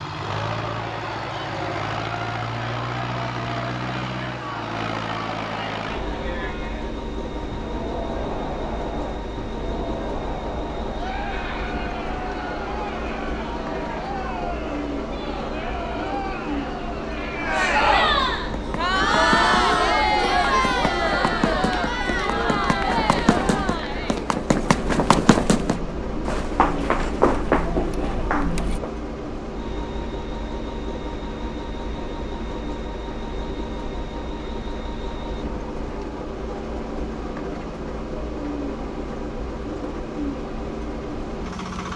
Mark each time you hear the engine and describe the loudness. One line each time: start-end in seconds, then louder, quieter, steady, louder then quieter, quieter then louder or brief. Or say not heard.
0.0-41.9 steady.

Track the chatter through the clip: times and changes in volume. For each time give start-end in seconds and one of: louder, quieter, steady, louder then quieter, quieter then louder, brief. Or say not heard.
0.1-28.8 louder then quieter.